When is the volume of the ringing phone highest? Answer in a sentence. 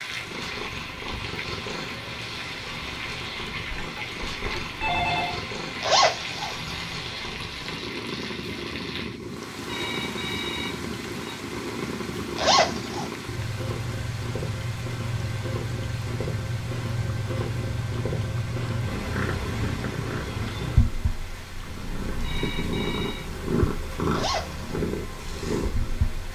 The volume of the ringing phone peaks at 5 seconds.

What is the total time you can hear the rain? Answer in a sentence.
You can hear the rain for 26 seconds altogether.